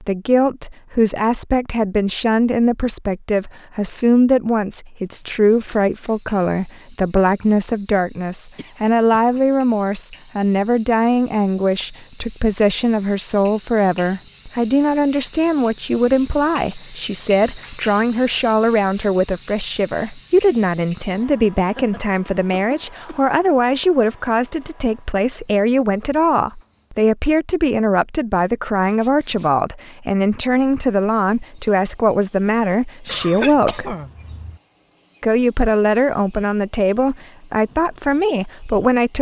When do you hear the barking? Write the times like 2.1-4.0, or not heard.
not heard.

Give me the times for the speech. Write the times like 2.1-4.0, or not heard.
0.0-34.0, 35.2-39.1.